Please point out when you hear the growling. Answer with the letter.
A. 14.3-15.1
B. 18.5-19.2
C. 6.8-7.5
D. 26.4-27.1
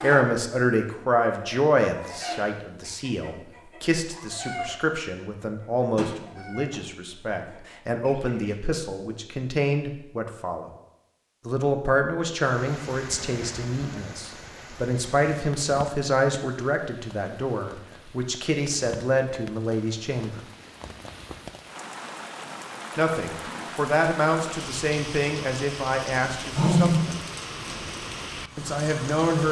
D.